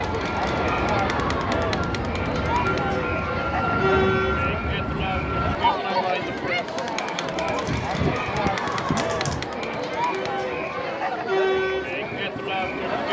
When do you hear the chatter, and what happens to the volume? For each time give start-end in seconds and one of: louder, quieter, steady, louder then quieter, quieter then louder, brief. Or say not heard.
0.0-13.0 steady.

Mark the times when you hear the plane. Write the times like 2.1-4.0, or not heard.
0.0-5.8.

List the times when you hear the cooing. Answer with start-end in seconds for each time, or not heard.
7.5-9.5.